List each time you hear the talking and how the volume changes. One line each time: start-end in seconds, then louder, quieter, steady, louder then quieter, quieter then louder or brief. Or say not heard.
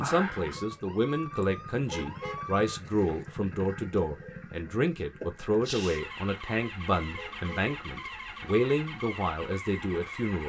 0.0-10.4 steady.